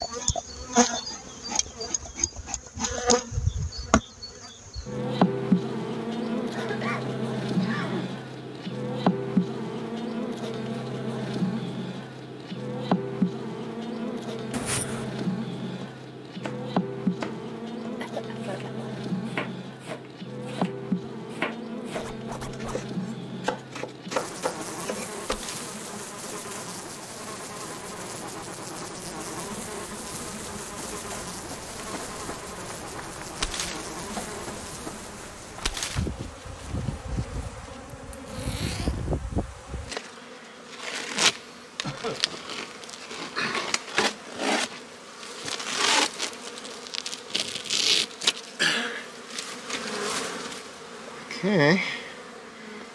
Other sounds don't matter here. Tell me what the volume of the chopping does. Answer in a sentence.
The loudness of the chopping goes up.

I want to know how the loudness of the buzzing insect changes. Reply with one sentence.
The loudness of the buzzing insect goes down, then up.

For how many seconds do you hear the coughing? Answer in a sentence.
The coughing can be heard for 3 seconds in total.